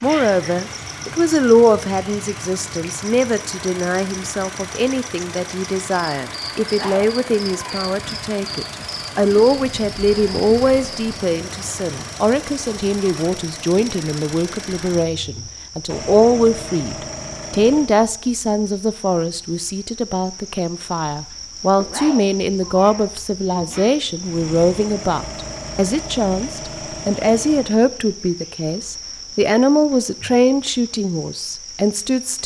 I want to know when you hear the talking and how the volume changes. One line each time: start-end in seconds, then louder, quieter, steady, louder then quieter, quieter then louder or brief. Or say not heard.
0.0-32.4 steady.